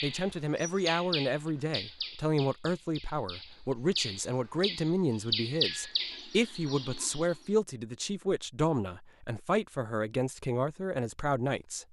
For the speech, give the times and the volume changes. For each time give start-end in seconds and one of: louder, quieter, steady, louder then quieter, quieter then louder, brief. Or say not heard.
0.0-11.8 steady.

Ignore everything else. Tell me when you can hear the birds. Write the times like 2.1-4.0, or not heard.
0.0-7.3.